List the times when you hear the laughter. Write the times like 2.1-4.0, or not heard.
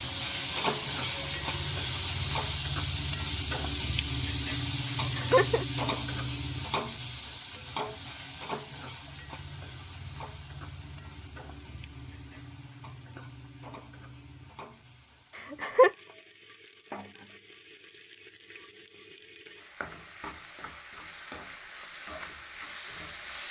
5.0-5.7, 15.5-15.9.